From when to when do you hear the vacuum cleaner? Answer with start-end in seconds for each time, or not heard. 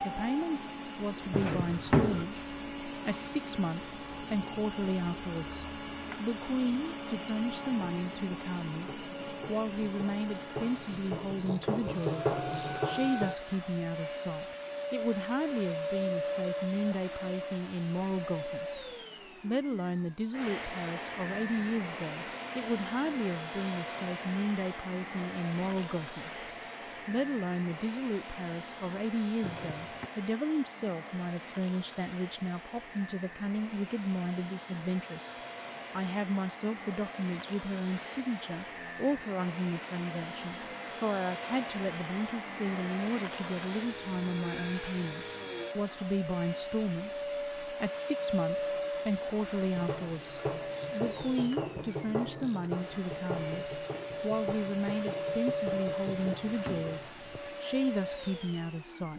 0.0-59.1.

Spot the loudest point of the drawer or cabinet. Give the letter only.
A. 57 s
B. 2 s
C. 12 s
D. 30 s
B.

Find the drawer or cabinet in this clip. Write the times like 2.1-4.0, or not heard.
1.3-2.2, 29.4-30.1, 56.0-57.5.